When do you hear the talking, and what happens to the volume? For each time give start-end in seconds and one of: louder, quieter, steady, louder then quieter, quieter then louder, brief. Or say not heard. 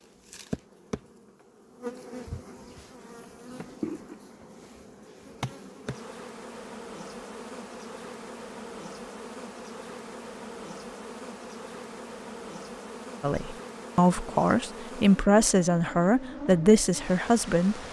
13.2-17.8 steady.